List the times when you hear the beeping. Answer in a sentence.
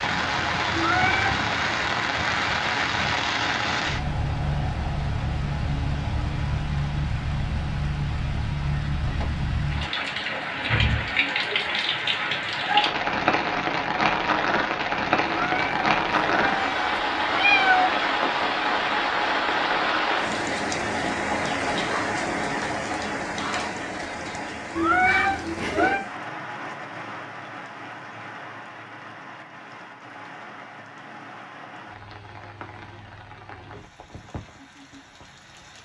You can't hear the beeping here.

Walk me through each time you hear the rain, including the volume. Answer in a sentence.
The rain can be heard from 0.0 to 35.8 s, getting quieter.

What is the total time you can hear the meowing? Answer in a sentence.
You can hear the meowing for 5 seconds altogether.